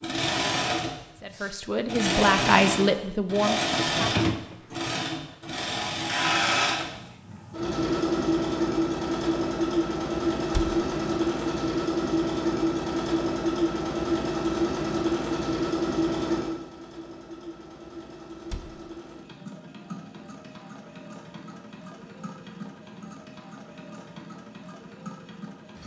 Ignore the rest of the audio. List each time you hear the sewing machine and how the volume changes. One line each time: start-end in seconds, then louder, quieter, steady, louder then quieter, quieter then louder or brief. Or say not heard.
0.0-25.8 quieter.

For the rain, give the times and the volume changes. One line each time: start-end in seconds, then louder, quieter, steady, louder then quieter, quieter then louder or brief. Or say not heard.
not heard.